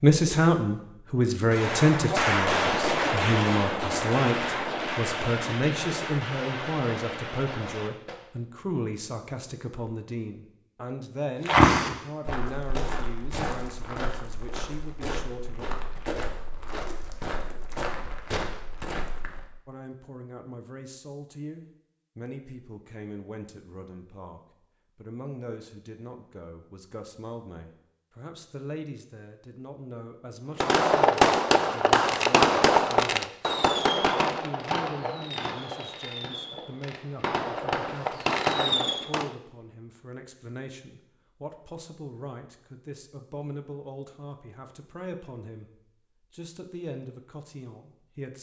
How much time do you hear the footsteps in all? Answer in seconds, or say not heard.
8 s.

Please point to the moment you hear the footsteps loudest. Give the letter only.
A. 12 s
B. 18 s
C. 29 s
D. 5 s
A.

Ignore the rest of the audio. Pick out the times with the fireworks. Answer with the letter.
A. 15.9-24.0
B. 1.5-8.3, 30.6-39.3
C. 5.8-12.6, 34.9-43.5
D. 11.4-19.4
B.